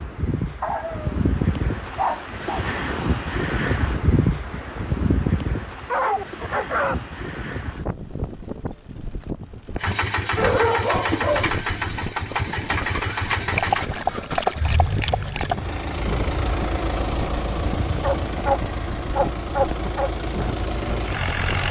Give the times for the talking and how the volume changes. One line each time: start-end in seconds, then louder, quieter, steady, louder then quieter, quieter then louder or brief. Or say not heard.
not heard.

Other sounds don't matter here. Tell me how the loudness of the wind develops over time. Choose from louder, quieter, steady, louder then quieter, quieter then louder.
quieter.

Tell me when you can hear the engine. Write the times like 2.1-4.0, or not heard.
9.8-21.6.